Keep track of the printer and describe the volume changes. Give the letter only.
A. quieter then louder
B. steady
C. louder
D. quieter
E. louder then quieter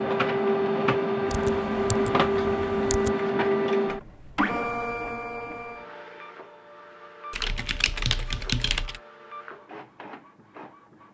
D.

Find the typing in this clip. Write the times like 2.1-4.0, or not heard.
1.2-3.1, 7.3-9.0.